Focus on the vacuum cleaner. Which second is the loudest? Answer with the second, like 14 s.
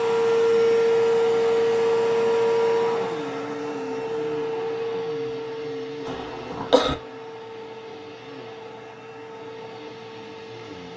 1 s.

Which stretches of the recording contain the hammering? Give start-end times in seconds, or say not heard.
not heard.